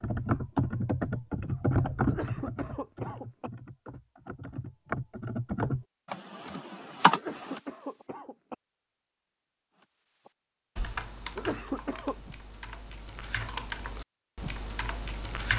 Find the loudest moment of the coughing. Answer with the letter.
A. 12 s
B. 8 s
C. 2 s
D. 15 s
A.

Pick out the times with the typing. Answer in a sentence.
The typing can be heard from 0.0 to 7.6 s and from 10.2 to 15.5 s.